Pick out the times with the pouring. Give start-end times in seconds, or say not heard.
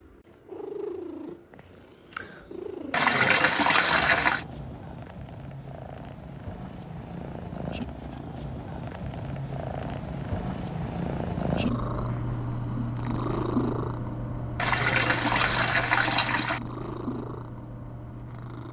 2.9-4.5, 14.6-16.6.